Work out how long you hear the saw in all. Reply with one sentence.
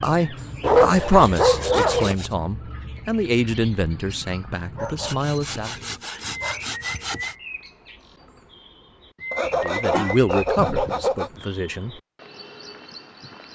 You can hear the saw for 6 seconds altogether.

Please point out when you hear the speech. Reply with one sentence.
The speech can be heard from 0.0 to 5.8 s and from 9.6 to 11.9 s.